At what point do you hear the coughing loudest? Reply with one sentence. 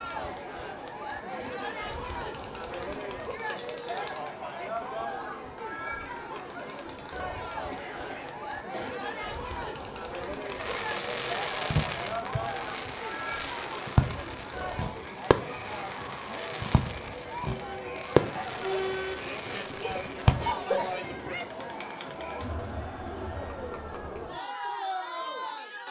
The volume of the coughing peaks at 21 seconds.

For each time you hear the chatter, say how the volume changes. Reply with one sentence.
The chatter can be heard from 0.0 to 25.8 s, at a steady volume.